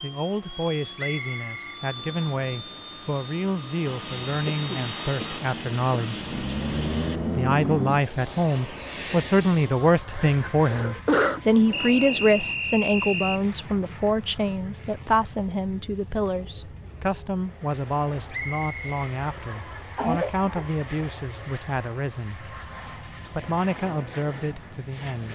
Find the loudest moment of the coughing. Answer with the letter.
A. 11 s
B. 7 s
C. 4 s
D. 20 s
A.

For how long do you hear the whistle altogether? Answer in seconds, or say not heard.
5 s.